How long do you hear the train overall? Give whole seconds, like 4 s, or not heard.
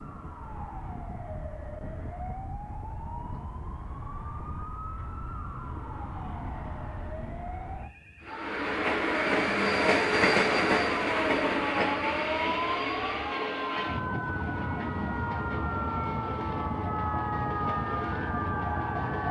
11 s.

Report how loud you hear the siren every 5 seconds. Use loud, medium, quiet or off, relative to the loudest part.
medium, medium, loud, loud.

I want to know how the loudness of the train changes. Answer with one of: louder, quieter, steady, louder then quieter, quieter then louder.
quieter.